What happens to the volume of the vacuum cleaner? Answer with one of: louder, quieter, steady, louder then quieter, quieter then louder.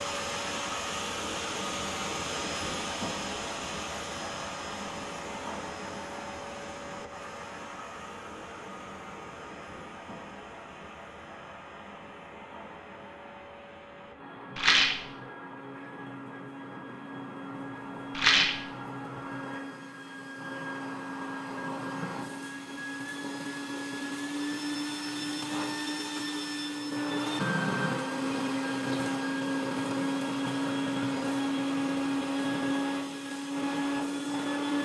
quieter then louder.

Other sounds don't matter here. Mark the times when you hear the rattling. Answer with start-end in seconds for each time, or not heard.
14.6-15.1, 18.1-18.6.